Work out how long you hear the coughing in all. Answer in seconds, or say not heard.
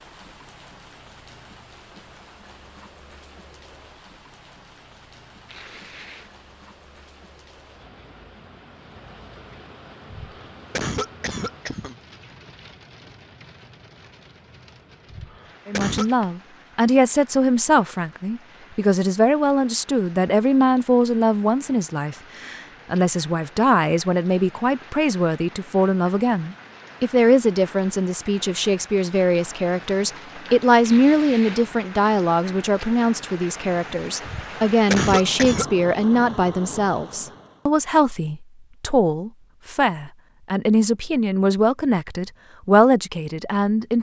4 s.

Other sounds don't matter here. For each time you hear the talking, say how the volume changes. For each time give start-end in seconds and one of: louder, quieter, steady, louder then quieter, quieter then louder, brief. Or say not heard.
15.7-43.9 steady.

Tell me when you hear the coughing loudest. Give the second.
35 s.